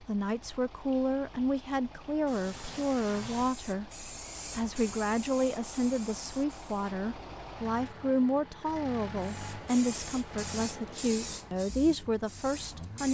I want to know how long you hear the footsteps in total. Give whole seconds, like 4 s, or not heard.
not heard.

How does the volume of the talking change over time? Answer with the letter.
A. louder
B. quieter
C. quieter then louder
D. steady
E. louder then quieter
D.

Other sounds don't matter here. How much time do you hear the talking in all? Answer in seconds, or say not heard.
13 s.